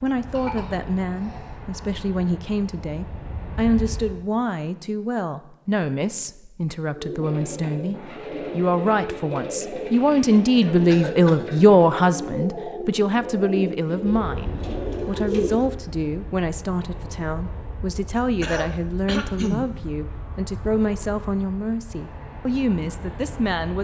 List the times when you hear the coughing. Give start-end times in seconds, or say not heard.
0.3-1.5, 10.8-11.5, 18.4-19.6.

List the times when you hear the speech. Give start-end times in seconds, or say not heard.
0.0-23.8.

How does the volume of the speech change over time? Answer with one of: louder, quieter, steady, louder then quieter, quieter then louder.
louder then quieter.